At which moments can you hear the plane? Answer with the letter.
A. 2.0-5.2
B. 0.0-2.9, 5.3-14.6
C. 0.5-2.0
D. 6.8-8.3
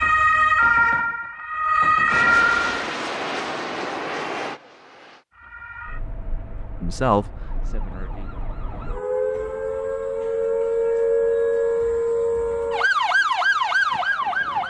A.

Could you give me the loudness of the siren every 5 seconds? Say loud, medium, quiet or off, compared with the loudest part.
loud, quiet, loud.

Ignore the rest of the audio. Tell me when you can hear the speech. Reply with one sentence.
You can hear the speech from 6.8 to 8.3 s.